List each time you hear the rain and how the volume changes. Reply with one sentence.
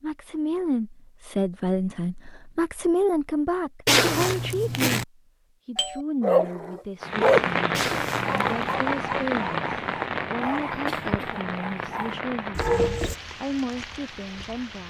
You can hear the rain from 7.0 to 14.8 s, getting quieter.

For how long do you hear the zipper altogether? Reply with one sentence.
You can hear the zipper for 2 seconds altogether.